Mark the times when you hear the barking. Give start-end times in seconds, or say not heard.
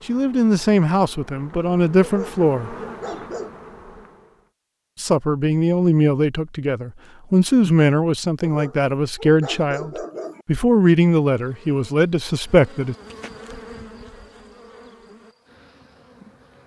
2.0-3.5, 8.4-10.4.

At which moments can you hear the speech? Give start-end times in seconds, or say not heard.
0.1-2.8, 5.0-12.9.